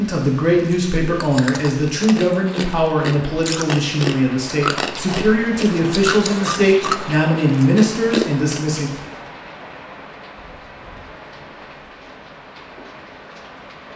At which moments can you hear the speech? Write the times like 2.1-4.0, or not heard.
0.0-8.9.